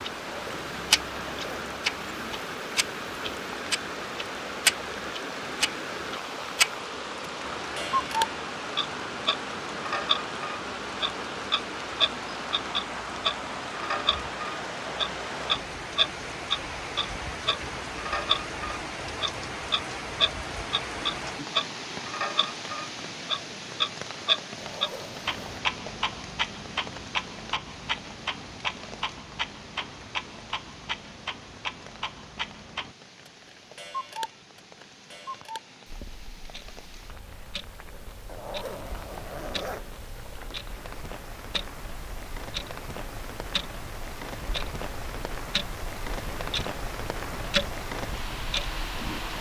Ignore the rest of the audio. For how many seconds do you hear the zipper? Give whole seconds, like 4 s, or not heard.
4 s.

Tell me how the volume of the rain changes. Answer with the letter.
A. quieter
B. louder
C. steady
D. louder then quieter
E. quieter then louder
E.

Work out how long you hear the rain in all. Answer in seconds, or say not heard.
49 s.